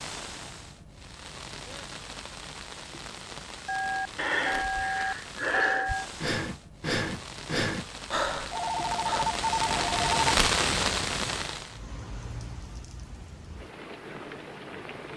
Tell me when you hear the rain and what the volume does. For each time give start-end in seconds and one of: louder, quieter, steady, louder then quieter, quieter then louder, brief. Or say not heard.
0.0-15.1 louder then quieter.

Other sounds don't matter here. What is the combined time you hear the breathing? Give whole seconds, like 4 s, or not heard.
5 s.